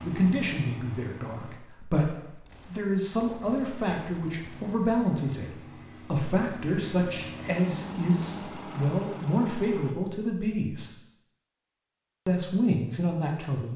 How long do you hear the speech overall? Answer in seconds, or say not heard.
12 s.